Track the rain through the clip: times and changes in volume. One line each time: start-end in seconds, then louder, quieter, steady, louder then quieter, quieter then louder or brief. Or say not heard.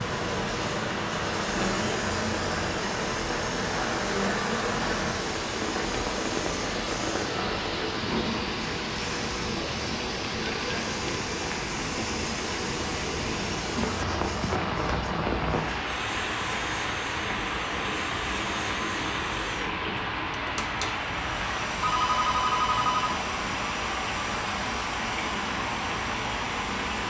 0.0-27.0 steady.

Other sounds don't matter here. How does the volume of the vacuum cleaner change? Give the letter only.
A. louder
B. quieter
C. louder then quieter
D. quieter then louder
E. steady
E.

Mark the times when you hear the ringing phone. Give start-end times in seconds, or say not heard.
21.8-23.2.